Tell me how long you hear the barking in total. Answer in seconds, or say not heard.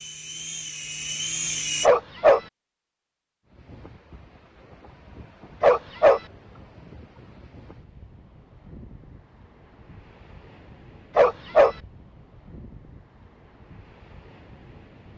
2 s.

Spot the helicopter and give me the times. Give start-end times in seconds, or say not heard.
0.0-1.9.